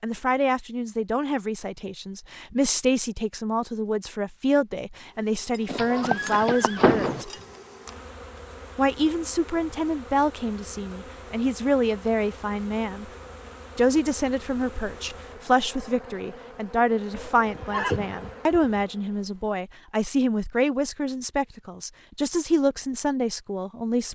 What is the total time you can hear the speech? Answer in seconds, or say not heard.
22 s.